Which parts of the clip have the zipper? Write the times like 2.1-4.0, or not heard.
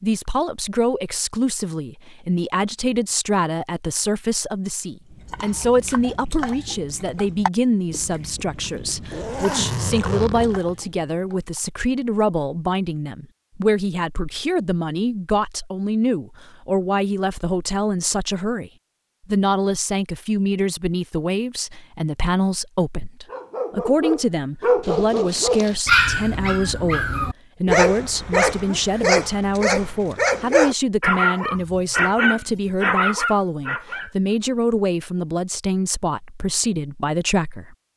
9.1-10.8, 24.8-25.8.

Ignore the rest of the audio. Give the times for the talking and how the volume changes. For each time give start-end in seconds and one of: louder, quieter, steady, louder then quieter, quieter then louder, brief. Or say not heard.
0.0-37.8 steady.